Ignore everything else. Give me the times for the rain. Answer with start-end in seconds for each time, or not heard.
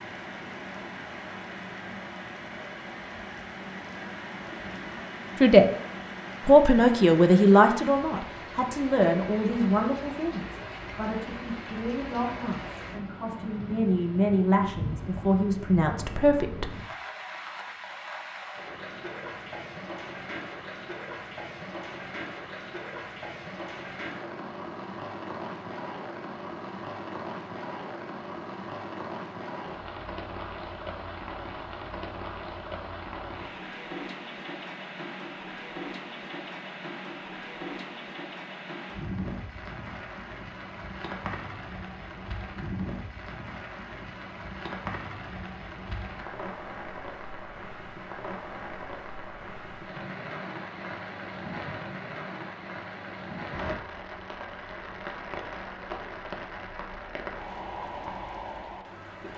0.0-59.3.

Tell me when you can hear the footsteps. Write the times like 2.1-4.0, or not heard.
not heard.